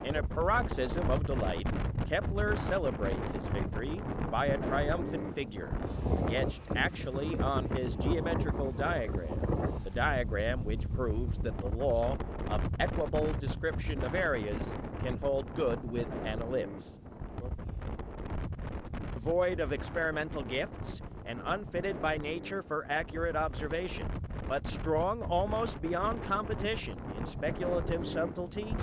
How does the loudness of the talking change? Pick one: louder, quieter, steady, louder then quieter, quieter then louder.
steady.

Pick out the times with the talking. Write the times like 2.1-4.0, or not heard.
0.0-16.9, 19.1-28.7.